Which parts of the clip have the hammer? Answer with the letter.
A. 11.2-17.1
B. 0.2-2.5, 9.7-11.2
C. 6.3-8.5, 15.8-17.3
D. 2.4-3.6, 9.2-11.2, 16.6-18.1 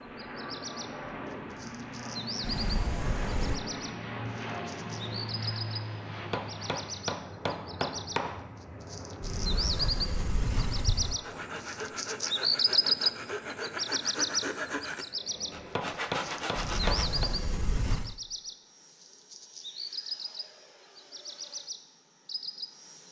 C.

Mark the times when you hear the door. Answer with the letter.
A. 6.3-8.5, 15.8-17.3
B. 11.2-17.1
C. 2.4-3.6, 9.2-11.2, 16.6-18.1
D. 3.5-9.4
C.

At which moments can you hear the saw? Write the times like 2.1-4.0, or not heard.
11.2-17.1.